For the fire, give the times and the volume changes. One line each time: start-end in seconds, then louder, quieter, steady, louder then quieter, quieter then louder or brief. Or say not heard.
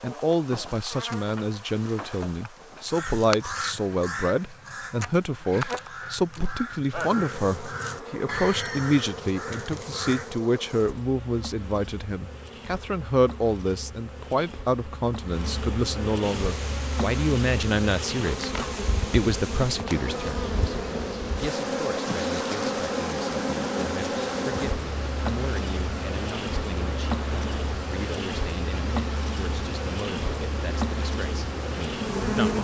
not heard.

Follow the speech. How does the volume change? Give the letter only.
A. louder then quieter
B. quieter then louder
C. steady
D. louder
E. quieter
E.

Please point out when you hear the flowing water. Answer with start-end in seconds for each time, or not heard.
16.2-32.5.